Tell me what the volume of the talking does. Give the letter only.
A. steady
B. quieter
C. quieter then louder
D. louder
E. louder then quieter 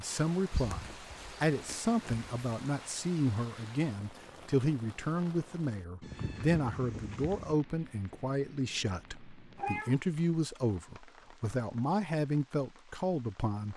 A.